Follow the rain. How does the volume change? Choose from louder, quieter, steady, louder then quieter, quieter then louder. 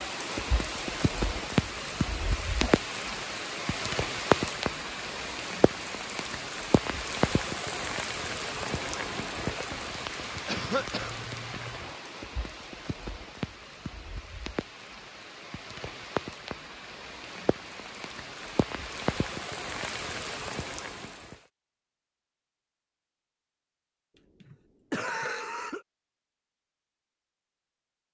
quieter.